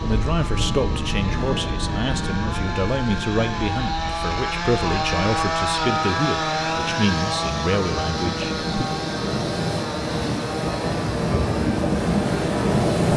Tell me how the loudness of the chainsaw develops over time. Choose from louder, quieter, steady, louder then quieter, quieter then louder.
louder then quieter.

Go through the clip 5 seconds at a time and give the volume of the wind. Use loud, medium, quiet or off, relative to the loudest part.
medium, medium, loud.